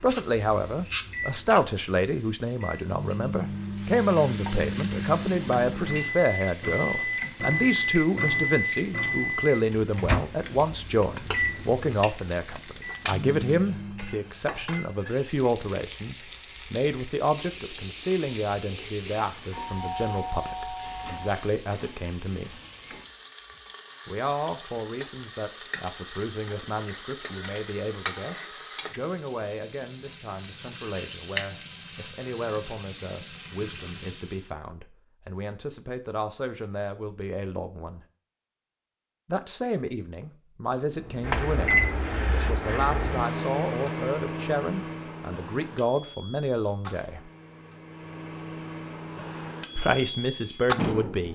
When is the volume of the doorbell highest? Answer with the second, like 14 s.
20 s.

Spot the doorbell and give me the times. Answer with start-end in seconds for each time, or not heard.
19.5-21.3.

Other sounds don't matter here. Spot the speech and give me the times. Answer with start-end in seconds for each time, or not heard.
0.0-22.6, 24.1-38.0, 39.2-47.2, 49.8-51.3.